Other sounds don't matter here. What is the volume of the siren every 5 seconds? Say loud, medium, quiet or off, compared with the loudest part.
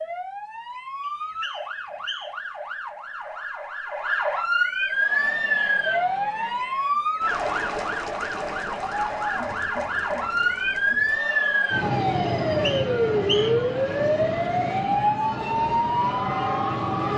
medium, loud, loud, loud.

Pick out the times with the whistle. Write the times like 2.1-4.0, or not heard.
1.2-2.4, 12.4-13.7.